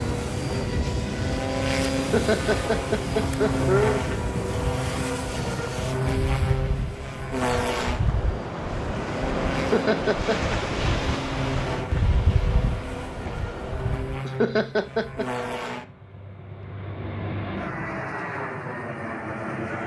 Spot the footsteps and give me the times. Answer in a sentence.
The footsteps can't be heard in this clip.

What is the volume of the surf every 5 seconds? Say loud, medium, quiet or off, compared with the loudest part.
loud, loud, loud, off.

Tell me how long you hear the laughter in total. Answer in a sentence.
The laughter can be heard for 4 seconds in total.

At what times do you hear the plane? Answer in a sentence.
You can hear the plane from 0.0 to 19.8 s.